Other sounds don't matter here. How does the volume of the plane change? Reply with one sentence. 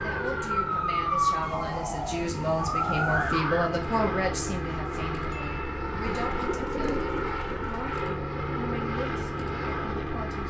The loudness of the plane goes up.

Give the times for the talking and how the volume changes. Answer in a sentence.
You can hear the talking from 0.0 to 10.4 s, getting louder then quieter.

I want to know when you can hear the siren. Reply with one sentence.
You can hear the siren from 0.0 to 3.7 s.